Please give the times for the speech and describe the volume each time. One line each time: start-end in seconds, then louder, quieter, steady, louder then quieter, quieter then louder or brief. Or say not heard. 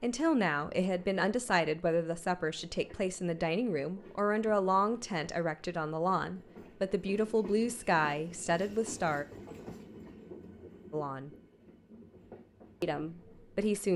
0.0-9.2 steady
10.9-11.3 brief
12.8-13.9 brief.